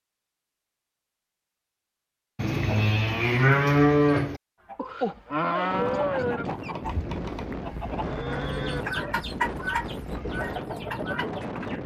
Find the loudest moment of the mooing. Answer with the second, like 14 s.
4 s.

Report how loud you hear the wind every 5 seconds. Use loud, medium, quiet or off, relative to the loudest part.
off, loud, loud.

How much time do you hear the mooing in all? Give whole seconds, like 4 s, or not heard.
8 s.